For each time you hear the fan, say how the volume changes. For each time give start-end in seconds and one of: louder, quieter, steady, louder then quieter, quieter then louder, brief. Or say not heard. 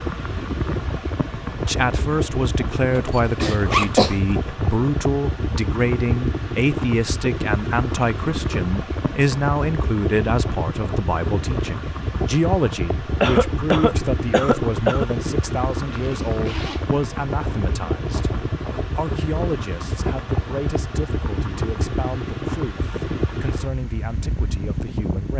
0.0-25.3 steady.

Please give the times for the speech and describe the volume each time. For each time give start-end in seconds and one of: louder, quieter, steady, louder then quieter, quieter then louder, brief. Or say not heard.
1.6-25.3 quieter.